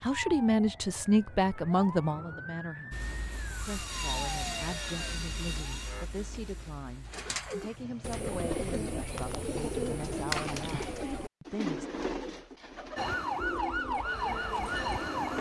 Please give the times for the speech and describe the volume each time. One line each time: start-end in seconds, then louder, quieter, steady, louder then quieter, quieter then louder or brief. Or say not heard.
0.0-11.9 quieter.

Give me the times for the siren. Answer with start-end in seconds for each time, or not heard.
0.0-6.0, 12.9-15.3.